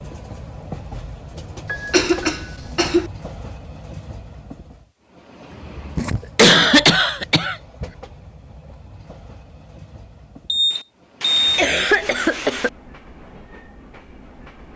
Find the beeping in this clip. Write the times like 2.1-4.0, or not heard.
10.4-11.6.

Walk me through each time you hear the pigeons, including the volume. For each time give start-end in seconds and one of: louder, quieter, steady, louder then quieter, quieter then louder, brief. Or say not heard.
not heard.